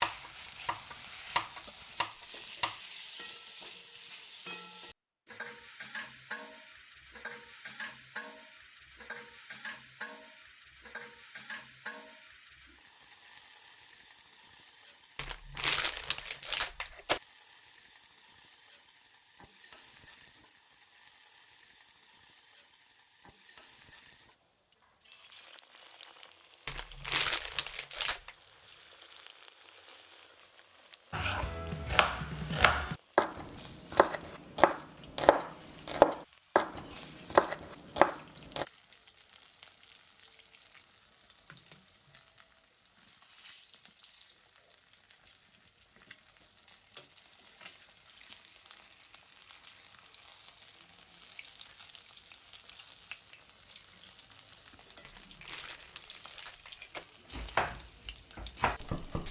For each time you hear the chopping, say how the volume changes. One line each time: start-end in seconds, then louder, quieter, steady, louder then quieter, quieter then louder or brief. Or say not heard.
0.0-2.8 brief
31.1-38.6 louder
57.3-59.2 brief.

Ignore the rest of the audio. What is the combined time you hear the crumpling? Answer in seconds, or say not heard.
6 s.